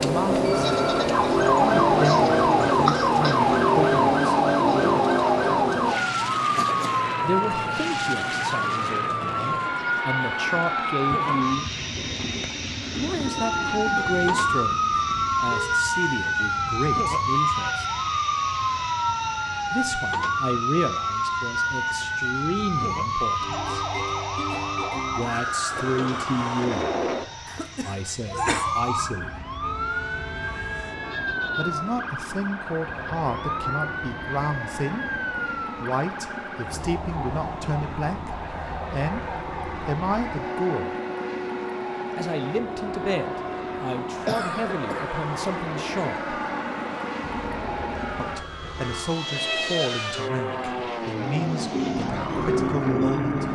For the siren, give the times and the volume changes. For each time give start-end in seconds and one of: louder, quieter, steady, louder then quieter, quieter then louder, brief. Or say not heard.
0.0-11.7 quieter
13.2-53.4 quieter.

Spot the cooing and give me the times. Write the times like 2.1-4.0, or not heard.
9.6-14.5, 51.7-53.4.